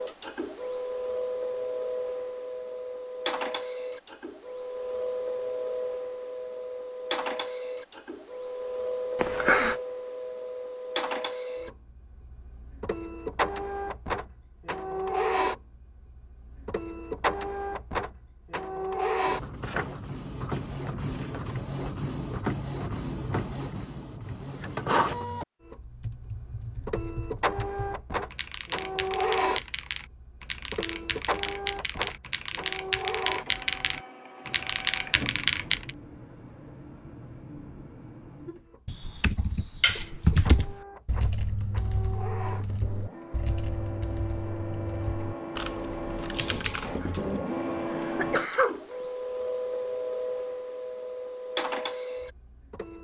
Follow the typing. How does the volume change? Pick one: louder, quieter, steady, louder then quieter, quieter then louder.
louder then quieter.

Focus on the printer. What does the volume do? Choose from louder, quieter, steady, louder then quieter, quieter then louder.
quieter then louder.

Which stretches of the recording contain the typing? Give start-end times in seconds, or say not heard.
25.8-35.9, 38.9-47.4.